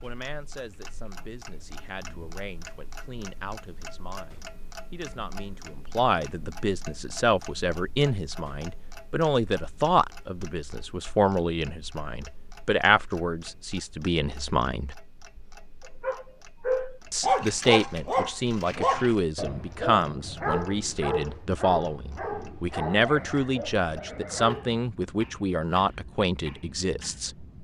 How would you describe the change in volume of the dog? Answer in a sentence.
The volume of the dog goes down.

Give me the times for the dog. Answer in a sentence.
The dog can be heard from 16.0 to 24.9 s.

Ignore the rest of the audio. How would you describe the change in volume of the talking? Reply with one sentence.
The volume of the talking goes up.